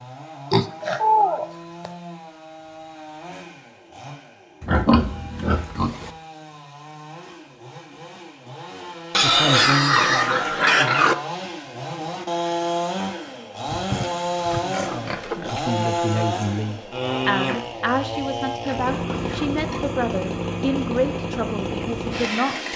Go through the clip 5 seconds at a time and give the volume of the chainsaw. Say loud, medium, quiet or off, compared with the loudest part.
quiet, quiet, loud, loud, loud.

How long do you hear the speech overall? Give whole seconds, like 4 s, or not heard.
10 s.